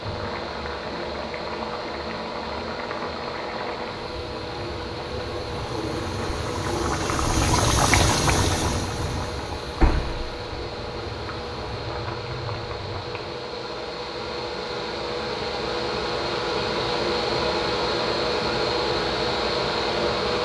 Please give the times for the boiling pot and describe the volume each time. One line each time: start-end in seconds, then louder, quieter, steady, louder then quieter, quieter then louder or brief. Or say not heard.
0.0-13.4 louder then quieter.